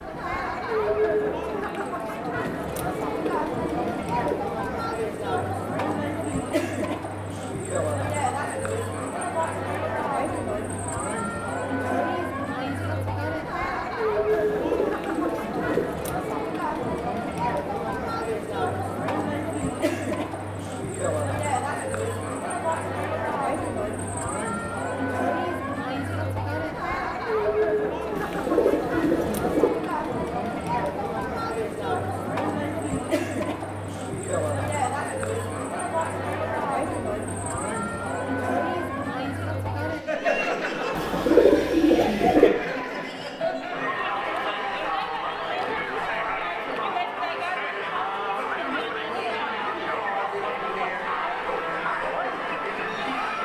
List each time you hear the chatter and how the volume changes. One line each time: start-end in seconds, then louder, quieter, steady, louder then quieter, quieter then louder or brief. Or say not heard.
0.0-53.4 steady.